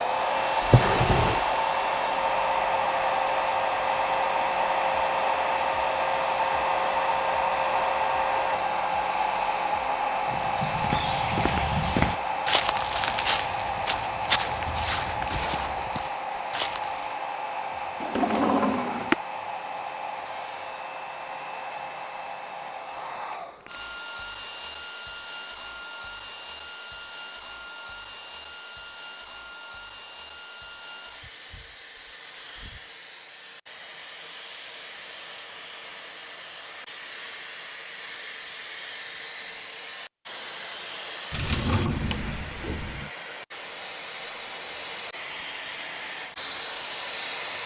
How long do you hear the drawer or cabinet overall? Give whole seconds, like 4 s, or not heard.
4 s.